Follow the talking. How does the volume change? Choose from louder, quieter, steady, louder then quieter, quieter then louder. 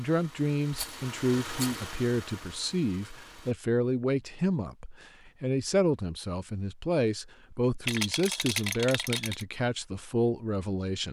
steady.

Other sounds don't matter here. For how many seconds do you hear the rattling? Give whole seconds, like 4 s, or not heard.
3 s.